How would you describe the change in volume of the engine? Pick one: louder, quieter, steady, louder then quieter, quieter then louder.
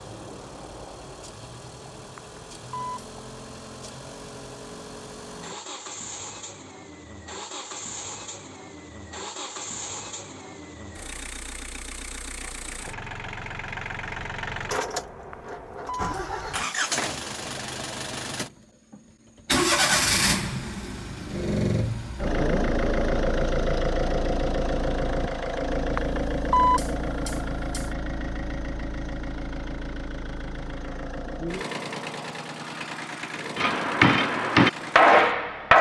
louder then quieter.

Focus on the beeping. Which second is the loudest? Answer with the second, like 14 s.
27 s.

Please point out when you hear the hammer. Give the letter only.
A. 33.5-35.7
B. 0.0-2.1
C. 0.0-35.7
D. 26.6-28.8
A.